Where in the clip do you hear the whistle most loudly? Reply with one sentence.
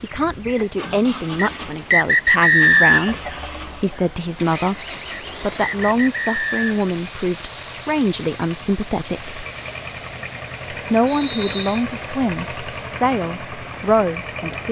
The volume of the whistle peaks at 3 seconds.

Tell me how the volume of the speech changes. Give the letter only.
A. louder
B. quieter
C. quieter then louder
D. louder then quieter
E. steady
E.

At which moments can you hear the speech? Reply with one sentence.
You can hear the speech from 0.0 to 9.4 s and from 10.7 to 14.6 s.